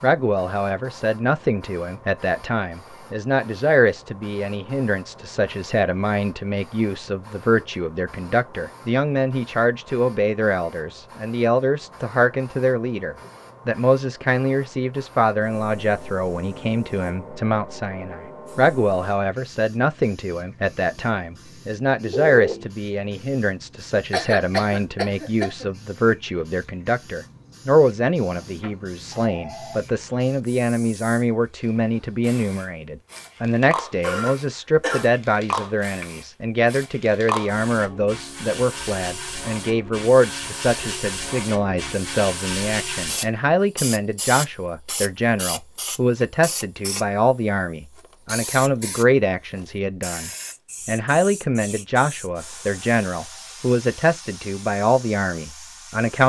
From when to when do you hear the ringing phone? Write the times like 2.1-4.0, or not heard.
22.0-22.7, 28.4-29.8.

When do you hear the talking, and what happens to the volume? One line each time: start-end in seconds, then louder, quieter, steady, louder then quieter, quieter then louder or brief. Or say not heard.
0.0-56.2 steady.